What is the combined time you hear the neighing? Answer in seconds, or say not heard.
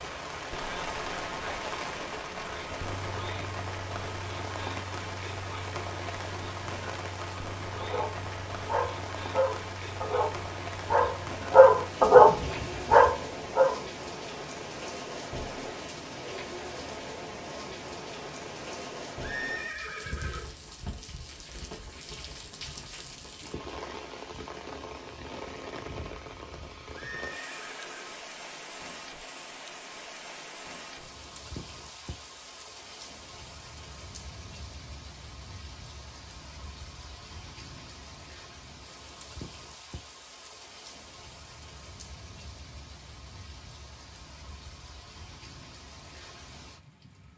3 s.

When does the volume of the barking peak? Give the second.
12 s.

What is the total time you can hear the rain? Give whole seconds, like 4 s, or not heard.
47 s.